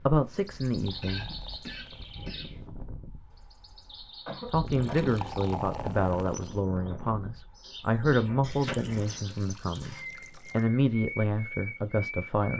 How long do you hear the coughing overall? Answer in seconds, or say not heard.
4 s.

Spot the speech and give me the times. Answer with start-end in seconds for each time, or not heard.
0.1-1.3, 4.5-12.5.